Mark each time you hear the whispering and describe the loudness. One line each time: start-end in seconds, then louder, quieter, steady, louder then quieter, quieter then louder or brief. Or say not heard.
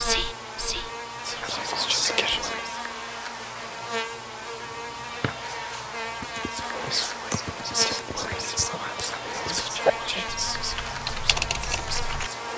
0.0-2.8 brief
6.5-12.5 quieter.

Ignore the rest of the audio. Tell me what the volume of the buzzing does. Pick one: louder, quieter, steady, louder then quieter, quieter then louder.
steady.